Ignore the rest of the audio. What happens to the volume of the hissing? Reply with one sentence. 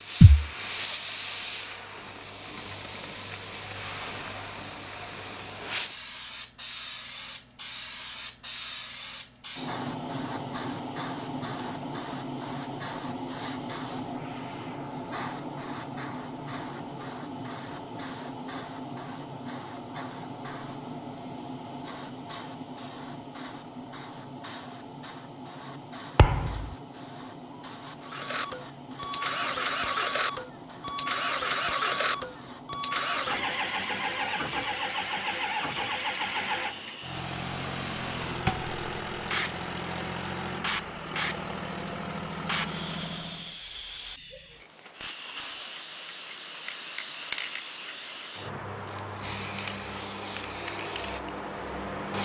The loudness of the hissing goes down, then up.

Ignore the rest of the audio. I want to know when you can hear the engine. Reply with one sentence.
The engine can be heard from 28.0 to 43.6 s.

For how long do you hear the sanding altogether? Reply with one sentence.
The sanding can't be heard in this clip.